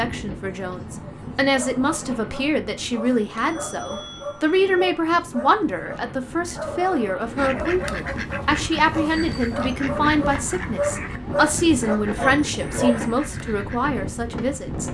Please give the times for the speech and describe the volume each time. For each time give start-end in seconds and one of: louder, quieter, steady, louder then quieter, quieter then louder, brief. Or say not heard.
0.0-14.8 steady.